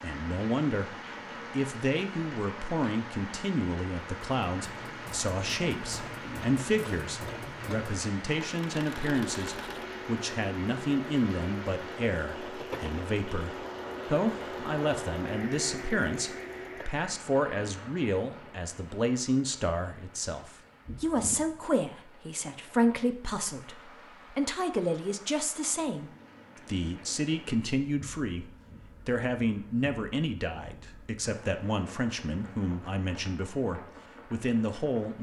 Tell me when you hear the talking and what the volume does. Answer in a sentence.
You can hear the talking from 0.0 to 35.1 s, at a steady volume.